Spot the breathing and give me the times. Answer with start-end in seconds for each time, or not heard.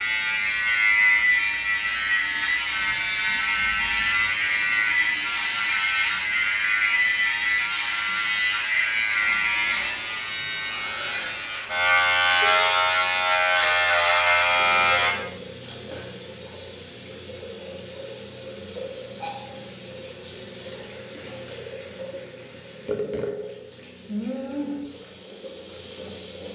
not heard.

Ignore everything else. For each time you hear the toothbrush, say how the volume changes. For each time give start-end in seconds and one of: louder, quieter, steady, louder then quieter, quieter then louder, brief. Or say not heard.
not heard.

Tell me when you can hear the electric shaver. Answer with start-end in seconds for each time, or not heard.
0.0-15.1.